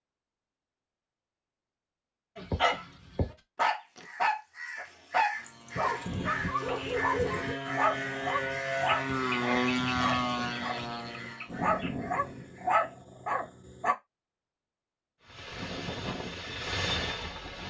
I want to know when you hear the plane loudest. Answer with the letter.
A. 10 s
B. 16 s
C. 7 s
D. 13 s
A.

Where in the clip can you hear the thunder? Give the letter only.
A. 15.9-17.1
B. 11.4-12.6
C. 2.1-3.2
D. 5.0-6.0
B.